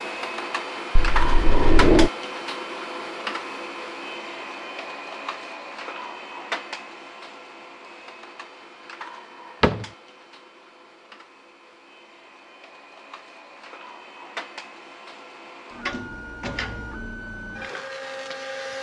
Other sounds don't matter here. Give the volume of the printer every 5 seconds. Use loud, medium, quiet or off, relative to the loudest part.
loud, medium, quiet, medium.